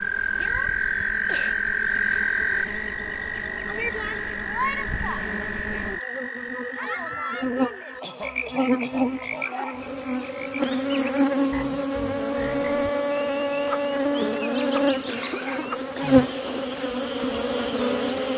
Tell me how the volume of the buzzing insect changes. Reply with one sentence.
The loudness of the buzzing insect goes up.